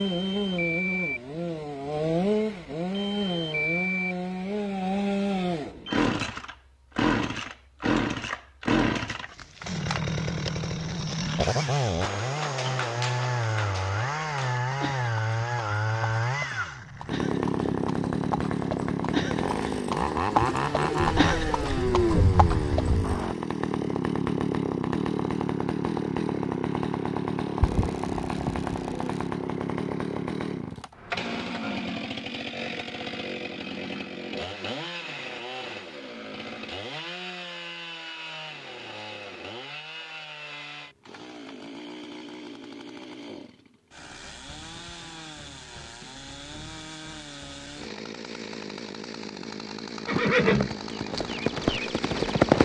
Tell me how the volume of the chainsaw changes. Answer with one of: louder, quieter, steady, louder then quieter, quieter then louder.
quieter.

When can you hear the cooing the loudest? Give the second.
22 s.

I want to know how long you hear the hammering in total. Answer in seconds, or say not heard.
not heard.